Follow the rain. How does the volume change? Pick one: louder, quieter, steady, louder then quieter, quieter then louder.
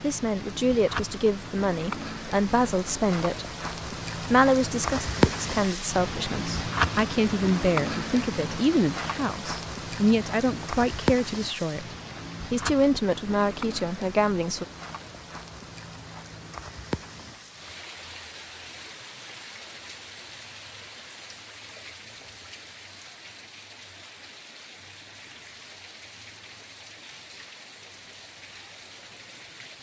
quieter.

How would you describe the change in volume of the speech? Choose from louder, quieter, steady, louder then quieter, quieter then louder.
steady.